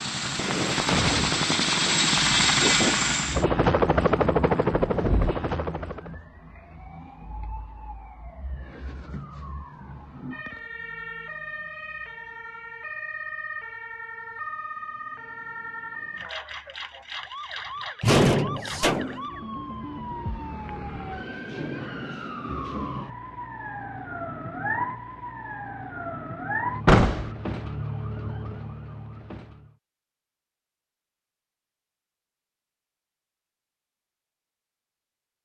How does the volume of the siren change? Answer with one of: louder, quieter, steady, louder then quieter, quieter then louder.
louder.